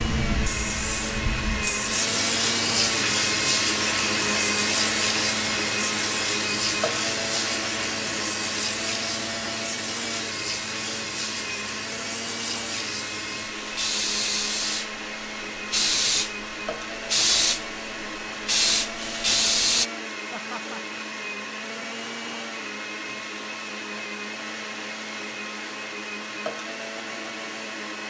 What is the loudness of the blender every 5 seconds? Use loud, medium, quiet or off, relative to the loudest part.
loud, loud, medium, medium, medium, medium.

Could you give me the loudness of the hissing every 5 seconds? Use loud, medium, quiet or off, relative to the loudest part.
loud, medium, medium, loud, off, off.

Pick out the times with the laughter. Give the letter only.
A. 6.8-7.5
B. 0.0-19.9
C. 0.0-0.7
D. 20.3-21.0
D.